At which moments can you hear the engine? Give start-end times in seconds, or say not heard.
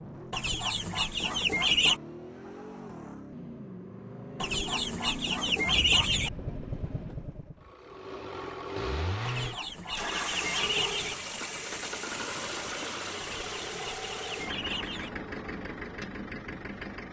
0.0-17.0.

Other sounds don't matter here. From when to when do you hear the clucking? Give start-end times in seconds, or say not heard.
0.3-1.9, 4.4-6.3, 9.2-11.2, 13.2-15.1.